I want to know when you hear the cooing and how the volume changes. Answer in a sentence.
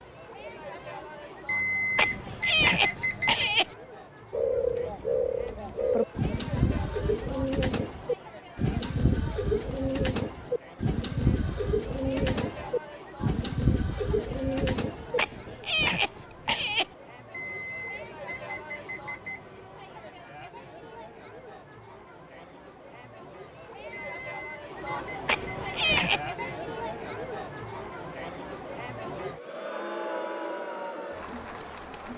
You can hear the cooing from 4.3 to 15.2 s, at a steady volume.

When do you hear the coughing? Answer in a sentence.
The coughing can be heard from 1.9 to 3.6 s, from 15.2 to 16.9 s and from 25.2 to 26.2 s.